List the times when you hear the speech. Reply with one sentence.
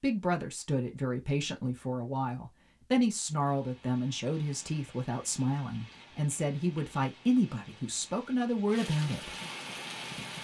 You can hear the speech from 0.0 to 9.3 s.